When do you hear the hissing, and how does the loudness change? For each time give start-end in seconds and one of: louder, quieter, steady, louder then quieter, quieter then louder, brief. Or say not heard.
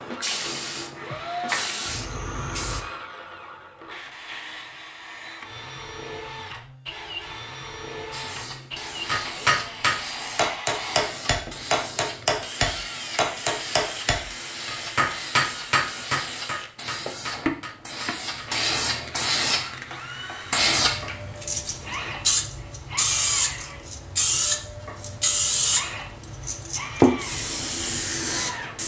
0.0-2.9 brief
8.1-28.8 louder.